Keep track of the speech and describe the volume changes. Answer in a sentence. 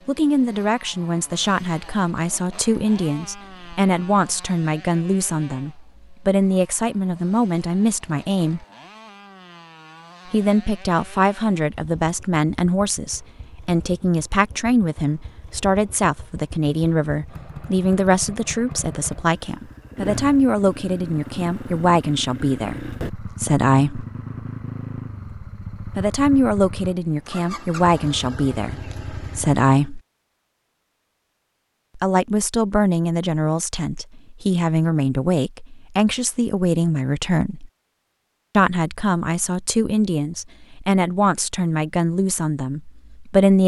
The volume of the speech stays about the same.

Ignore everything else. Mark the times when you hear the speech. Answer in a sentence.
You can hear the speech from 0.1 to 8.7 s, from 10.3 to 24.1 s, from 25.9 to 30.0 s, from 31.9 to 37.7 s and from 38.5 to 43.6 s.